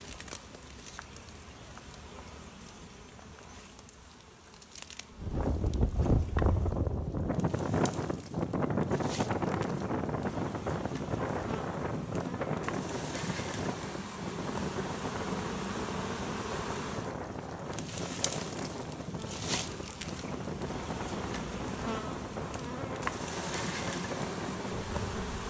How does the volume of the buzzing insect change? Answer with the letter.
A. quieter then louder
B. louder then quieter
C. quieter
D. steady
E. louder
E.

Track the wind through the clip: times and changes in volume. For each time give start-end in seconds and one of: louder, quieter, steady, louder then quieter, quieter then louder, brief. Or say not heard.
5.2-25.4 quieter.